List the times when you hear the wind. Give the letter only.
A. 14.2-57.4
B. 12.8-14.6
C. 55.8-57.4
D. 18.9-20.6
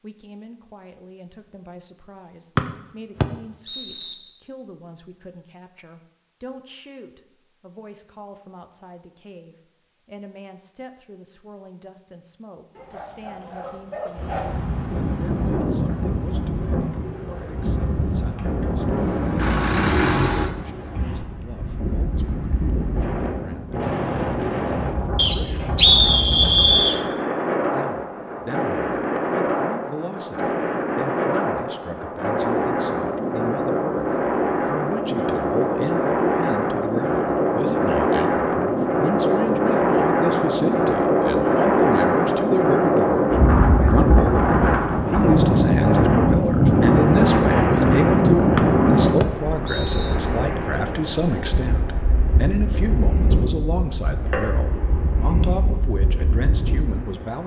A.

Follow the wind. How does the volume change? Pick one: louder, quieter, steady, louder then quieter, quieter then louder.
louder then quieter.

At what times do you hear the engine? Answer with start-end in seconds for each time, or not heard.
18.9-20.6.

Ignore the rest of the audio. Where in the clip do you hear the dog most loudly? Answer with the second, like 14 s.
14 s.